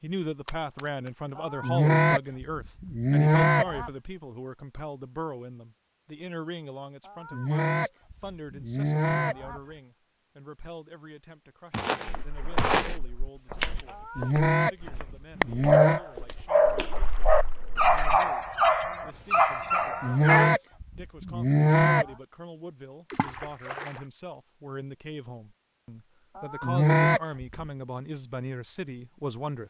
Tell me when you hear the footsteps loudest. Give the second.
13 s.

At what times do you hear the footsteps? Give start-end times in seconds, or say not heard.
11.7-17.1.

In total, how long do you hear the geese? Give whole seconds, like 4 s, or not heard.
11 s.